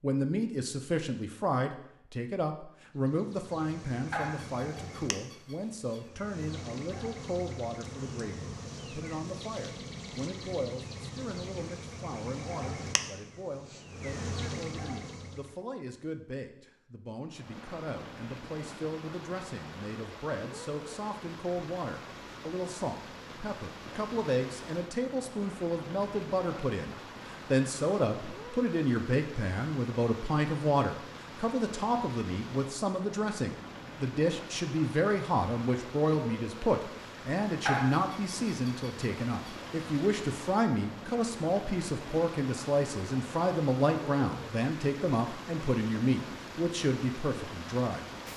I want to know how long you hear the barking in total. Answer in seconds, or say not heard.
4 s.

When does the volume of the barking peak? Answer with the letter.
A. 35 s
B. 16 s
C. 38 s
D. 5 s
C.